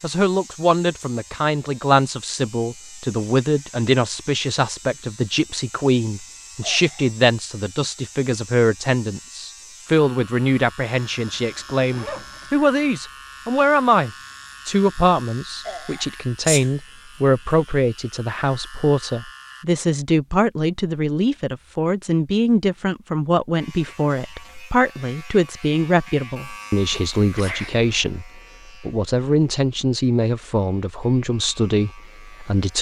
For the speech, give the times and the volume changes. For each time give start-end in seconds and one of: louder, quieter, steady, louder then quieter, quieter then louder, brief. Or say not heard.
0.0-32.7 steady.